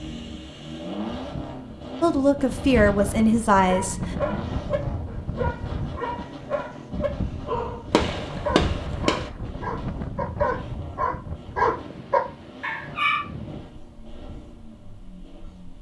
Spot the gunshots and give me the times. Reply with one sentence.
The gunshots can be heard from 7.9 to 9.3 s.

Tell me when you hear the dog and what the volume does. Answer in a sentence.
The dog can be heard from 3.5 to 13.2 s, getting louder.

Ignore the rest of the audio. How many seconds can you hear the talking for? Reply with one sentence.
The talking can be heard for 2 seconds in total.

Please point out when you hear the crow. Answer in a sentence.
The crow can't be heard in this clip.